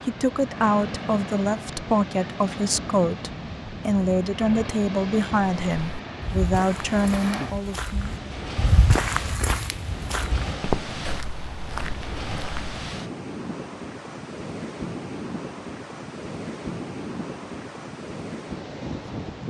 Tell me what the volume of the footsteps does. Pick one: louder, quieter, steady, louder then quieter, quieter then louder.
louder then quieter.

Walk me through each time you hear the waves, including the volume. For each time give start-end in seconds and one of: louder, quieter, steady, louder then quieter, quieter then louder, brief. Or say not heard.
0.0-19.4 steady.